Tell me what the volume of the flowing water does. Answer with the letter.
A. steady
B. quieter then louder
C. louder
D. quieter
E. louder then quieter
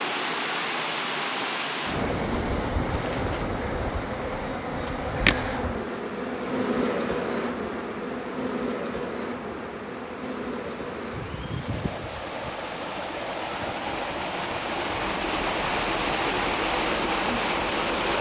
B.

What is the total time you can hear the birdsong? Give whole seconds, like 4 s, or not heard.
not heard.